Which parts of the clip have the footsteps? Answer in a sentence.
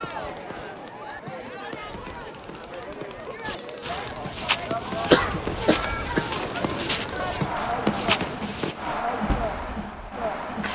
You can hear the footsteps from 3.5 to 8.8 s.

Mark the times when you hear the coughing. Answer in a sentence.
The coughing can be heard from 5.1 to 6.2 s.